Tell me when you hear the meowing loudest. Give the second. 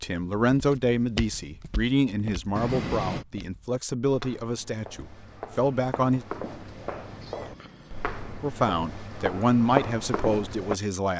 3 s.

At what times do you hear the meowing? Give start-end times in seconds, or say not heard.
2.5-3.2, 6.4-8.2.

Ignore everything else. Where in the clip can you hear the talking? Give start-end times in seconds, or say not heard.
0.0-6.2, 8.4-11.1.